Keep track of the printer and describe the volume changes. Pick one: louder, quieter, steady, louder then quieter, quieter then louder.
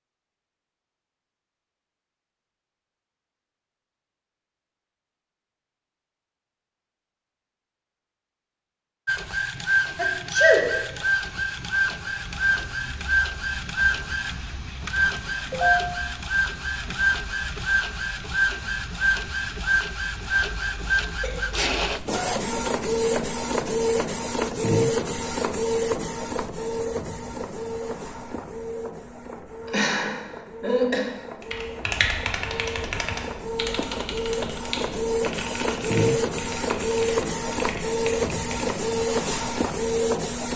quieter then louder.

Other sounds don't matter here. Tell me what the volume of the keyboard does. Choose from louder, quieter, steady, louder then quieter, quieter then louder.
quieter.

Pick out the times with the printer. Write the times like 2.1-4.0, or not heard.
9.1-40.5.